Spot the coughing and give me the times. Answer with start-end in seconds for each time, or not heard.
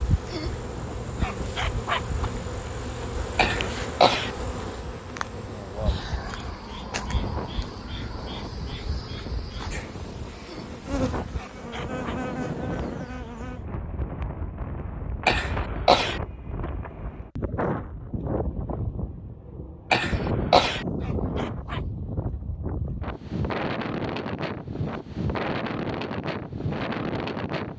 3.4-4.3, 15.2-16.2, 19.9-20.9.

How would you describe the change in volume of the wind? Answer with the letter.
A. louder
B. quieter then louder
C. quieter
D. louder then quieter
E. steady
A.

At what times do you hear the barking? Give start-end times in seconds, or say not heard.
0.2-2.2, 10.4-12.2, 20.1-21.9.